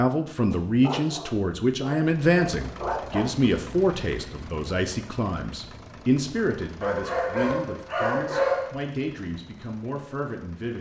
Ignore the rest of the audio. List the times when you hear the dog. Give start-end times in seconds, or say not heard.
0.5-3.3, 6.8-8.7.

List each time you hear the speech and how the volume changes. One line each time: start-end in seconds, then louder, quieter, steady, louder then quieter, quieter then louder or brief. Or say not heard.
0.0-10.7 quieter.